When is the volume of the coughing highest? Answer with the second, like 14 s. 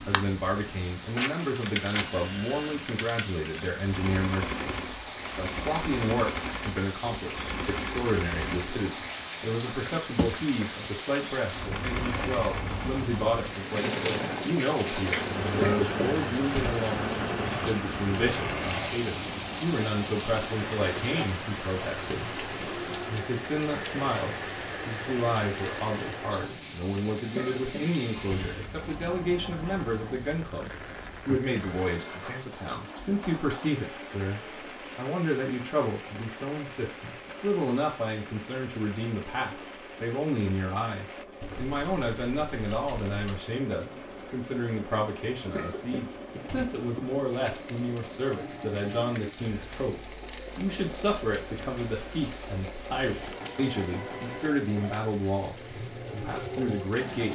16 s.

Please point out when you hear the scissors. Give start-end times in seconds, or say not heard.
1.1-2.1, 41.4-43.4.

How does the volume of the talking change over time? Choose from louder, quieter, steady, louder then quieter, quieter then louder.
steady.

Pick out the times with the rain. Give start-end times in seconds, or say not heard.
0.0-57.3.